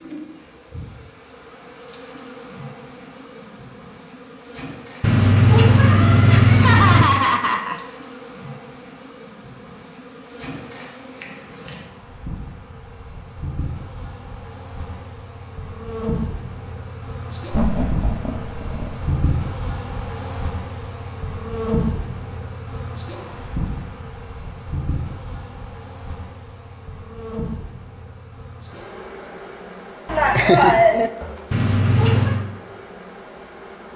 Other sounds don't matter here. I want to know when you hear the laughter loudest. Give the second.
31 s.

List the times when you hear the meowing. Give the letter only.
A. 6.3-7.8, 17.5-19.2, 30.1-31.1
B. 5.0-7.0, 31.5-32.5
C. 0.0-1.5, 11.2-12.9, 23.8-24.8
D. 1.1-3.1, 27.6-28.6
B.